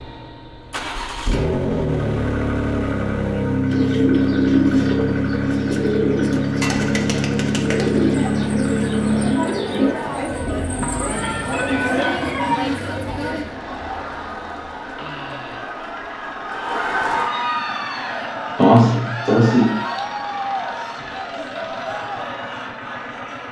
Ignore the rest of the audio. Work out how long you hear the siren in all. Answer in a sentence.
You can't hear the siren here.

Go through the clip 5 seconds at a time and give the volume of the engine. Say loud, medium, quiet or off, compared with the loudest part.
loud, loud, quiet, quiet, quiet.